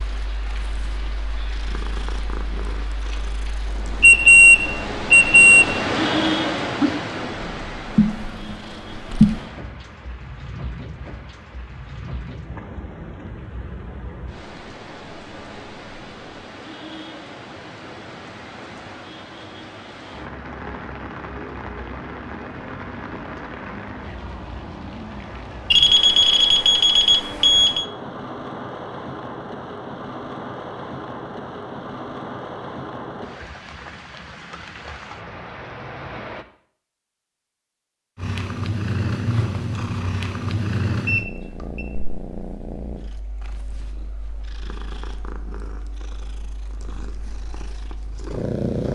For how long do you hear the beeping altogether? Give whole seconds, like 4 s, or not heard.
5 s.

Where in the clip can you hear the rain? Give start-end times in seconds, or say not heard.
0.0-36.5.